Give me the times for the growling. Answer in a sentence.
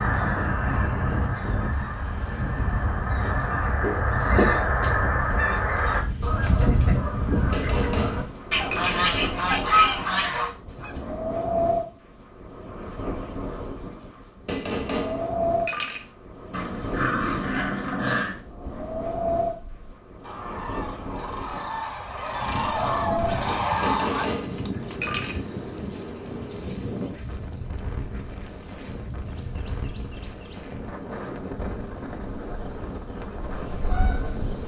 The growling can be heard from 16.5 to 18.4 s.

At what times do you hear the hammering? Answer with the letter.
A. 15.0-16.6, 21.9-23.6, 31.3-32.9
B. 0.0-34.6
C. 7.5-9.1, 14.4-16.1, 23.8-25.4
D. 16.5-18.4
C.